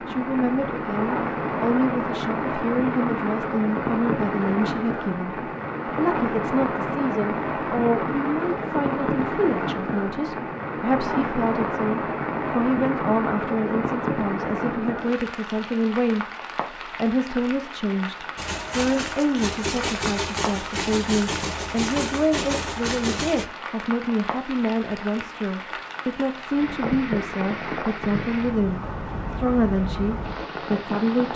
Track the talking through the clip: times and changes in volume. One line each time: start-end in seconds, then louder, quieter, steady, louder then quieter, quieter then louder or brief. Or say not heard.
0.0-31.3 steady.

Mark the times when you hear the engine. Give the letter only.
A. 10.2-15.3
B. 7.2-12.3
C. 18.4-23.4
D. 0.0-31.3
C.